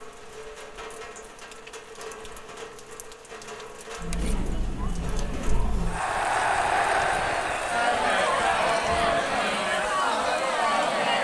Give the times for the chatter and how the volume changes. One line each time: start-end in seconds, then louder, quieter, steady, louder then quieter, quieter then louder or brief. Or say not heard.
4.0-11.2 louder.